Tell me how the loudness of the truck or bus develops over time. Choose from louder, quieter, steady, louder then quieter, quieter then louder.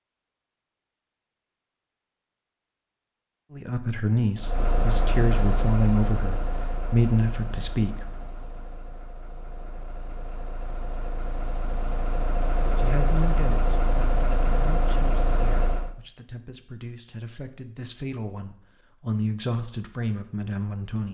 quieter then louder.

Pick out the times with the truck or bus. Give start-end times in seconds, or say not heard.
4.3-15.9.